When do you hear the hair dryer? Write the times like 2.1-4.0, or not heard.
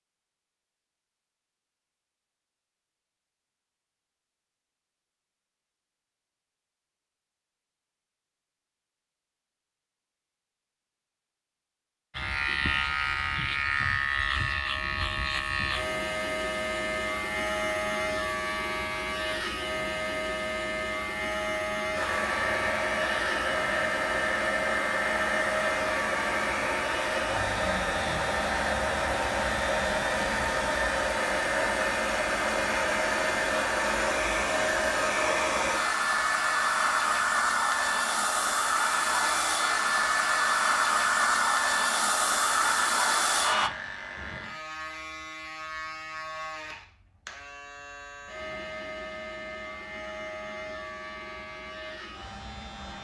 21.9-43.7.